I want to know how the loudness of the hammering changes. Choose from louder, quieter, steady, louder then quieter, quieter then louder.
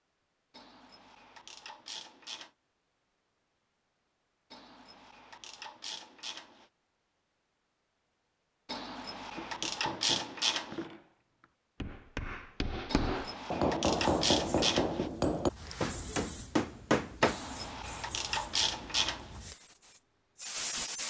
louder.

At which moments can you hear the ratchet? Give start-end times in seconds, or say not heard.
0.6-2.5, 4.5-6.7, 8.7-10.8, 12.9-15.1, 17.2-19.2.